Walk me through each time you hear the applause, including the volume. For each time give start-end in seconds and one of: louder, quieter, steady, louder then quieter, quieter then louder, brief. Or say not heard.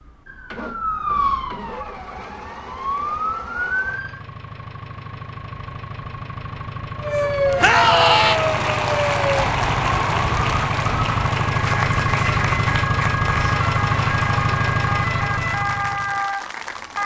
7.7-17.0 quieter.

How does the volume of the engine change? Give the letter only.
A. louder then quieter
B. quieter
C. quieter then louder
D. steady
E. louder
E.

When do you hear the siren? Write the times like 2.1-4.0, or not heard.
0.0-4.2, 7.0-17.0.